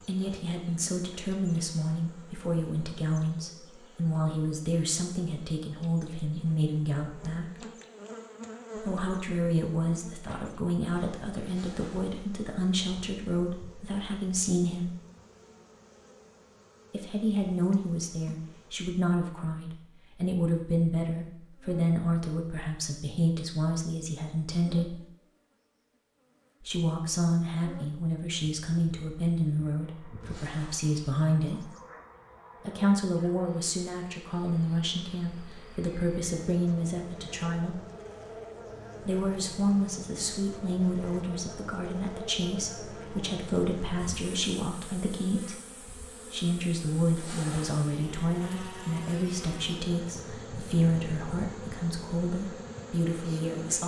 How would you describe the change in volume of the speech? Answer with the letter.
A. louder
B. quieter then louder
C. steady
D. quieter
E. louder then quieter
C.